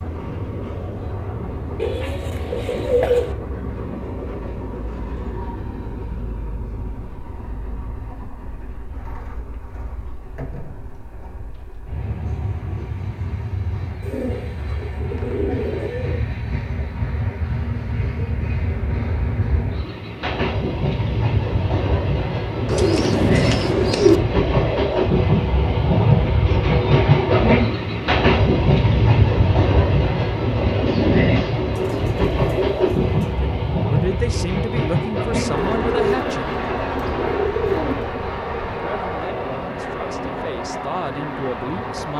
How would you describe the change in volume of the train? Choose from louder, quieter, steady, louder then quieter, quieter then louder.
louder then quieter.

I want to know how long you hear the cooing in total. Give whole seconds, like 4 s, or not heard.
12 s.